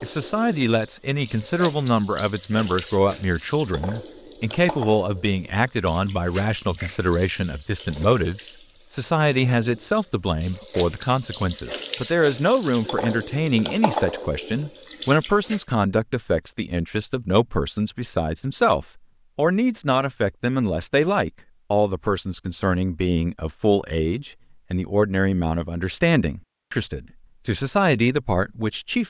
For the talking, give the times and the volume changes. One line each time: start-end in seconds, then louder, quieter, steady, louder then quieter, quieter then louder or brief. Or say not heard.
0.0-29.0 steady.